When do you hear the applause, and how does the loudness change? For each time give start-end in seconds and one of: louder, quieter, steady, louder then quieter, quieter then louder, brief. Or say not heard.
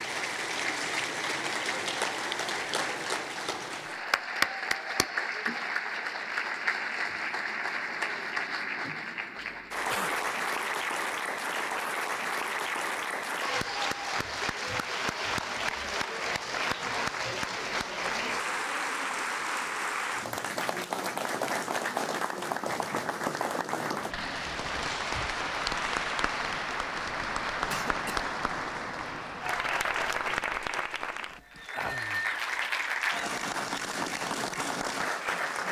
0.0-35.6 steady.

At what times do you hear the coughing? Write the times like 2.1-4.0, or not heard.
9.3-10.2, 27.7-28.3.